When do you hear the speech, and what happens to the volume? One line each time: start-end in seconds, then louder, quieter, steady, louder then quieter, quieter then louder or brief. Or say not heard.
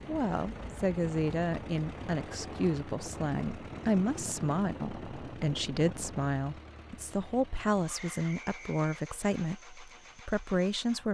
0.1-11.0 steady.